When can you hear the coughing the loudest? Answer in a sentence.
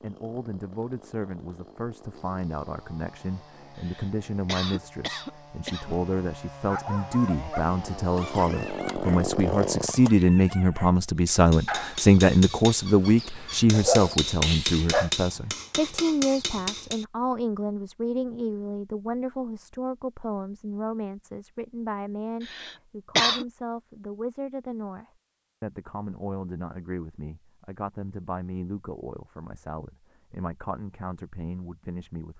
The volume of the coughing peaks at 23 seconds.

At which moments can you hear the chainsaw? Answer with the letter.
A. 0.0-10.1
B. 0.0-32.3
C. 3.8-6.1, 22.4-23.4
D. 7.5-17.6
A.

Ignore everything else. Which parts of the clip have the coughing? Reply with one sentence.
You can hear the coughing from 3.8 to 6.1 s and from 22.4 to 23.4 s.